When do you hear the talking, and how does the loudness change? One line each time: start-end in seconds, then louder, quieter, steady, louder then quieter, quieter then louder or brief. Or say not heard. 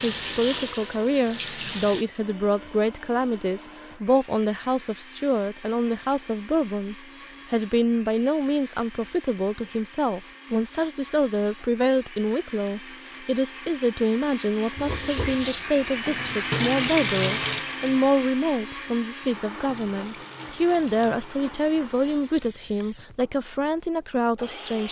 0.0-24.8 steady.